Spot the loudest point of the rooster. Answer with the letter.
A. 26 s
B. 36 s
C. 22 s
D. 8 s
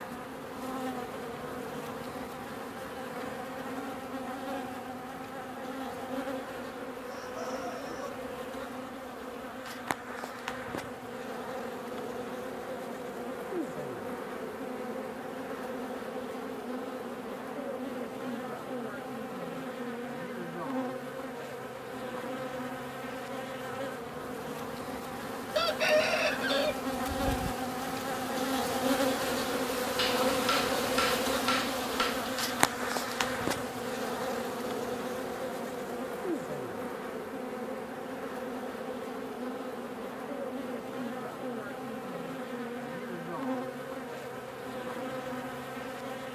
A.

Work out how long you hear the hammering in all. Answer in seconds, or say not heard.
2 s.